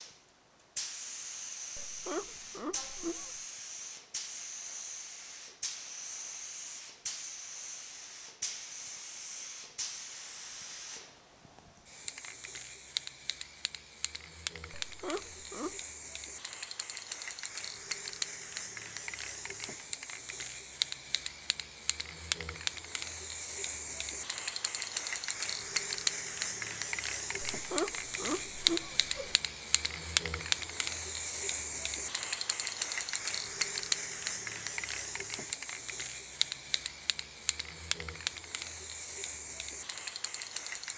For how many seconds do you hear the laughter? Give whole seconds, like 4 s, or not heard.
5 s.